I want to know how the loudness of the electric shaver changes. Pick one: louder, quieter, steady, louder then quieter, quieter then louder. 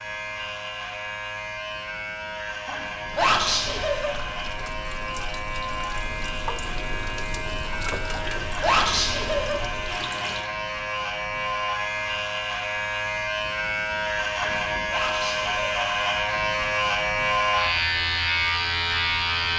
louder.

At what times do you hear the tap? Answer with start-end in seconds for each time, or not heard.
3.0-10.5.